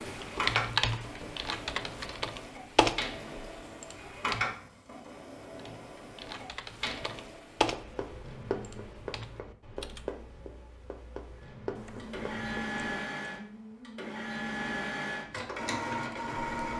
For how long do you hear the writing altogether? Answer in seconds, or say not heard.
5 s.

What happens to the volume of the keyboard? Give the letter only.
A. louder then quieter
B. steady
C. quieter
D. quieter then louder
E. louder
C.